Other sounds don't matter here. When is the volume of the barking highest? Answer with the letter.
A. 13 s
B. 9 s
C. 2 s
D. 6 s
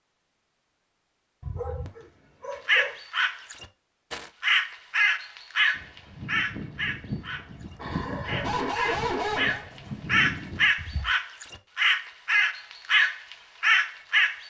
B.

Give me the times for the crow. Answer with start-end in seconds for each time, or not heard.
2.6-14.4.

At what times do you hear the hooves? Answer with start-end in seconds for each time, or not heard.
5.7-11.1.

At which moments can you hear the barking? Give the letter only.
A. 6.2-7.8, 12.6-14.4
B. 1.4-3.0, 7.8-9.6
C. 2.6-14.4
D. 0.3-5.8
B.